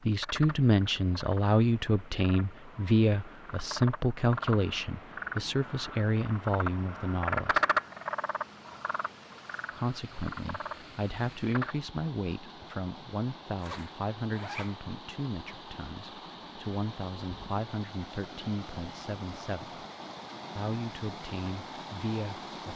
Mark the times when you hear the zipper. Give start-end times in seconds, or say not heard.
13.6-14.8.